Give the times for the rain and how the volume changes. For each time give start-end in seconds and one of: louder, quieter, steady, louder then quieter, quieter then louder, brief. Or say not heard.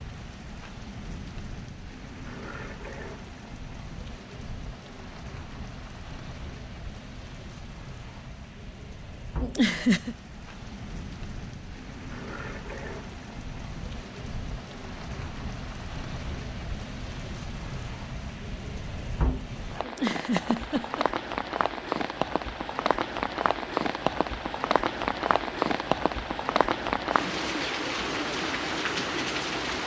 0.0-29.8 louder.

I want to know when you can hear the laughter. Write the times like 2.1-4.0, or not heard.
9.4-10.2, 19.8-21.1.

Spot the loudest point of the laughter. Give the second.
10 s.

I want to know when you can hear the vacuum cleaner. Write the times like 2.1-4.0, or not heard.
not heard.